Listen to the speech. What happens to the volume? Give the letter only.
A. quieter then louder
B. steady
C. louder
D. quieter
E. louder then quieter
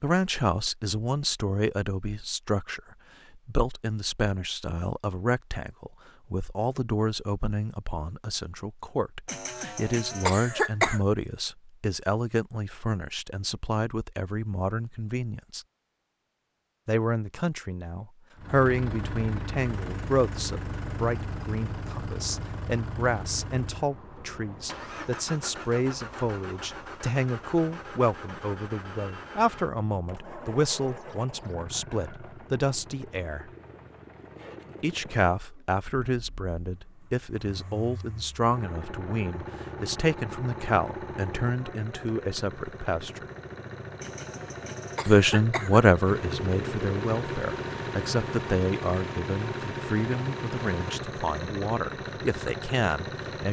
B.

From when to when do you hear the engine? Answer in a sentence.
You can hear the engine from 18.4 to 53.4 s.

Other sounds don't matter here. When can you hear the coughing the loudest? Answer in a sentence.
The loudest moment of the coughing is at 11 seconds.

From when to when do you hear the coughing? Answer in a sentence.
The coughing can be heard from 9.2 to 11.0 s and from 44.0 to 45.8 s.